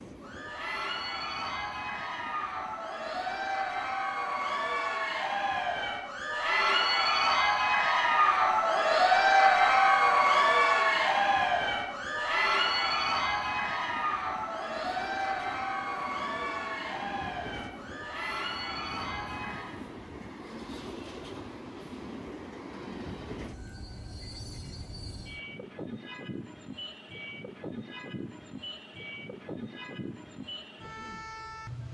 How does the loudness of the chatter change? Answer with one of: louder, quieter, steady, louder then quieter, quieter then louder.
louder then quieter.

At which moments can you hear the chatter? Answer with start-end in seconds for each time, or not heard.
0.1-19.8.